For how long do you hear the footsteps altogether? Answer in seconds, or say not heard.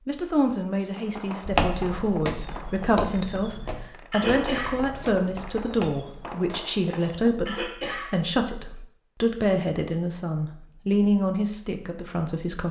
5 s.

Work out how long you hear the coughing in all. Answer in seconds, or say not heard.
2 s.